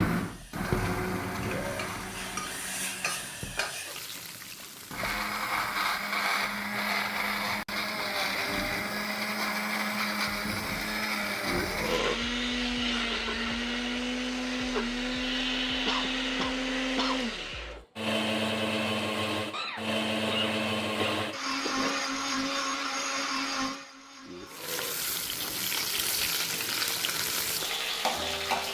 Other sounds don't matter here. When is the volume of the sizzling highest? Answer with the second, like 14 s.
28 s.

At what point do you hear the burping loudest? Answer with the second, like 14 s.
12 s.